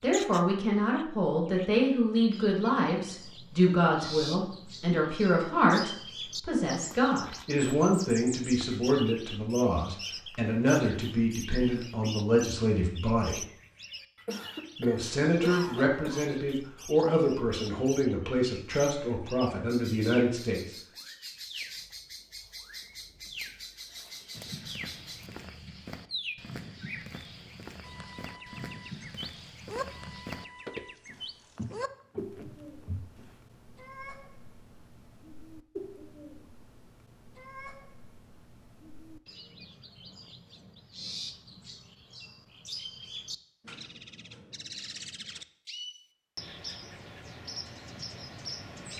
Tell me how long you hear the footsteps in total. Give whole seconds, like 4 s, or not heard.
9 s.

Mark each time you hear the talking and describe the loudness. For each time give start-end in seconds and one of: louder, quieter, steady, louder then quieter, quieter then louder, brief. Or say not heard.
0.0-13.4 steady
14.8-20.8 steady.